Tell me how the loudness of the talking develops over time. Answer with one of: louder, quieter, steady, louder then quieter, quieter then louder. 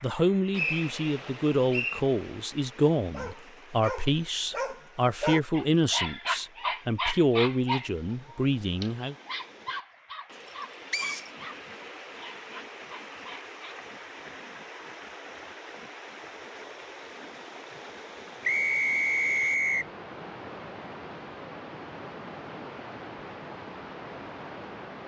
steady.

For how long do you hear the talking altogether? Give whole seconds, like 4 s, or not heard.
9 s.